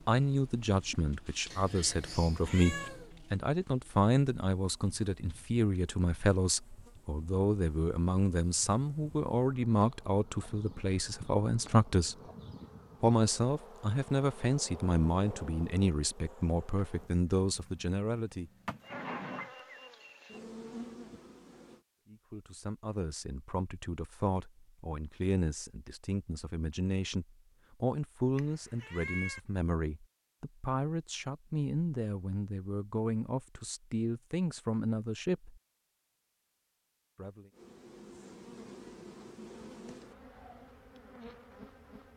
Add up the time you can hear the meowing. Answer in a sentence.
You can hear the meowing for 3 seconds altogether.